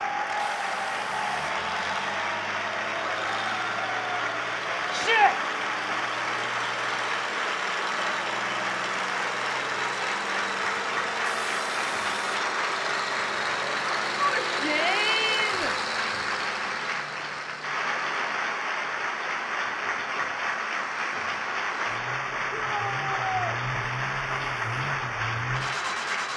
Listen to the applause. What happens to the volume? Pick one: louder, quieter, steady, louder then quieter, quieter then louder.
steady.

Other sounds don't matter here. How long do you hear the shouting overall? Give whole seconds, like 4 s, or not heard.
3 s.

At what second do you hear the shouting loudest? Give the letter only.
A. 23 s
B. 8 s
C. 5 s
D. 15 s
C.